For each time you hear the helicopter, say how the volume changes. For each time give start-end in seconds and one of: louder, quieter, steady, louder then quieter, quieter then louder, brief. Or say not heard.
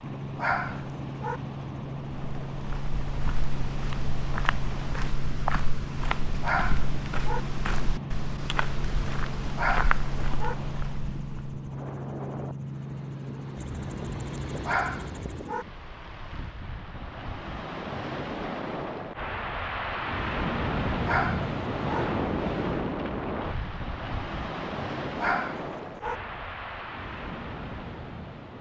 0.0-15.6 steady.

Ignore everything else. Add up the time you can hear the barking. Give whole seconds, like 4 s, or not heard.
6 s.